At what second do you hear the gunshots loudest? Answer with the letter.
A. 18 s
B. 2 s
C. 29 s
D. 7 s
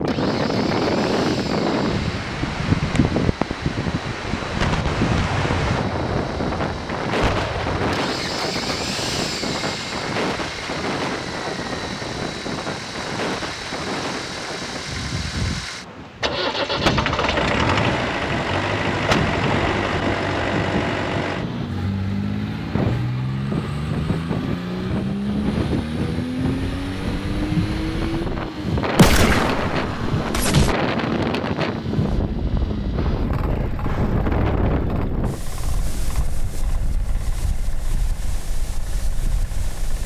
C.